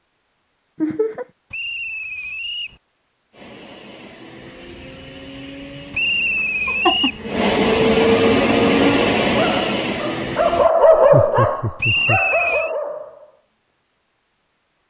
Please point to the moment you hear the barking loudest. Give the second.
11 s.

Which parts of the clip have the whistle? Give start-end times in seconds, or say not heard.
1.5-2.8, 5.9-7.2, 11.8-12.8.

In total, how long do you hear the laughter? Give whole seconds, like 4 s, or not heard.
2 s.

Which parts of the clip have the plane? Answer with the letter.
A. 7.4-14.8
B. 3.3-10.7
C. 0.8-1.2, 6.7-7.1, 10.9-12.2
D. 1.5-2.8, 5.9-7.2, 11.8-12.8
B.